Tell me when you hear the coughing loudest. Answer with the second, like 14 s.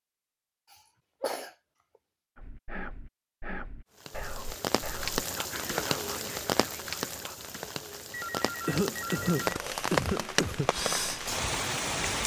9 s.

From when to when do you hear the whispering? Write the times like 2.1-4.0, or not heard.
2.4-7.3.